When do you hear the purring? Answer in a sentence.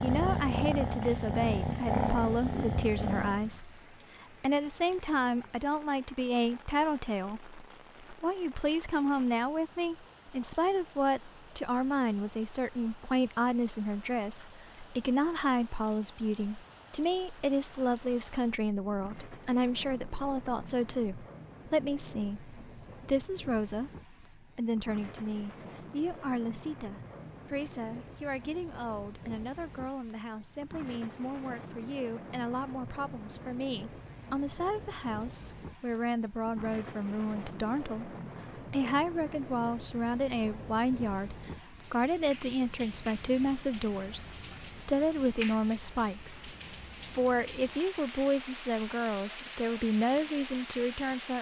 You can hear the purring from 0.0 to 3.6 s.